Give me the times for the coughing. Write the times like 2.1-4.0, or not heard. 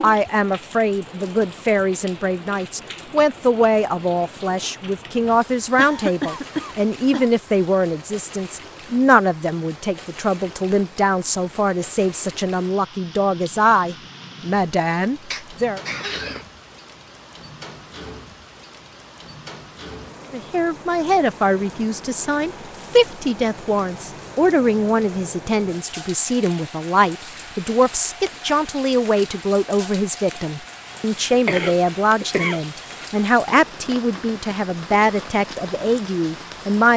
5.8-7.3, 15.3-16.4, 30.9-33.0.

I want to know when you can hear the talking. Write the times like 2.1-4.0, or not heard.
0.0-15.8, 20.3-36.9.